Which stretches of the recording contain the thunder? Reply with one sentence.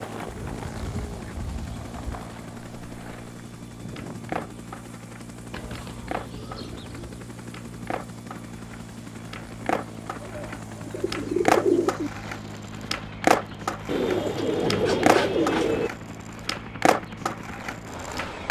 The thunder can't be heard in this clip.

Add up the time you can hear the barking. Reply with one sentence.
You can't hear the barking here.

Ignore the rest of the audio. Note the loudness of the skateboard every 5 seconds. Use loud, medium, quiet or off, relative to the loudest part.
quiet, quiet, loud, loud.